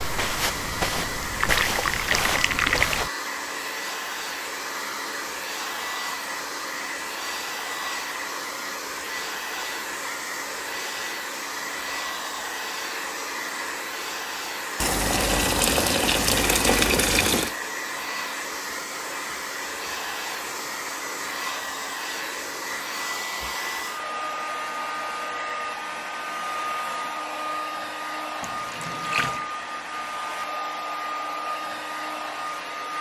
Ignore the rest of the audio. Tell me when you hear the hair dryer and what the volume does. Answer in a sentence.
The hair dryer can be heard from 0.0 to 32.9 s, at a steady volume.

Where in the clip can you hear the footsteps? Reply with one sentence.
You can hear the footsteps from 0.0 to 3.1 s.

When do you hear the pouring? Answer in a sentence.
You can hear the pouring from 1.2 to 3.0 s, from 14.8 to 17.6 s and from 28.4 to 29.4 s.